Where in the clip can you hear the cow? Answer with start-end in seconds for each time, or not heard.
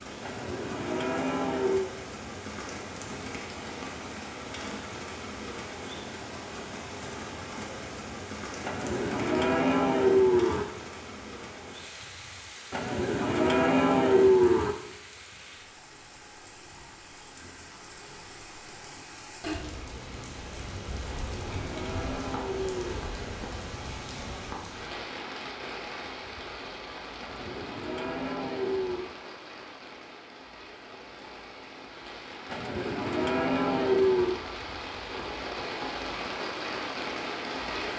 0.2-1.9, 8.6-10.7, 12.7-14.8, 21.1-23.1, 27.2-29.1, 32.5-34.4.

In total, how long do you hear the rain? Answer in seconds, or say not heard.
38 s.